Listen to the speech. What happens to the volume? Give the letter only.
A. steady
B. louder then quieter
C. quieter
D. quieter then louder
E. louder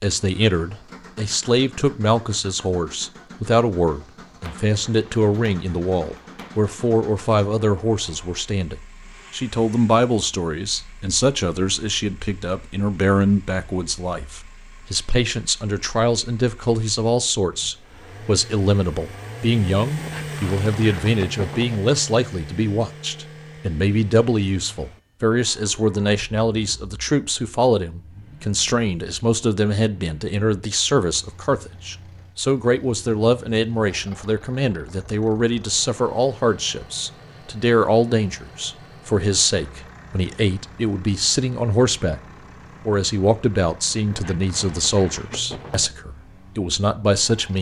A.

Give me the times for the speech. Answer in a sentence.
The speech can be heard from 0.0 to 42.2 s and from 42.9 to 47.5 s.